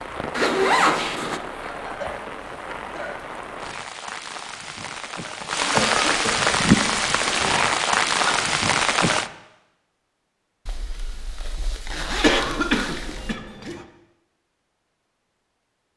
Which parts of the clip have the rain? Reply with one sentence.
You can hear the rain from 0.0 to 9.3 s.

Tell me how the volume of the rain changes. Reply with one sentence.
The volume of the rain goes up.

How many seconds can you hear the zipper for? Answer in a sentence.
The zipper can be heard for 5 seconds in total.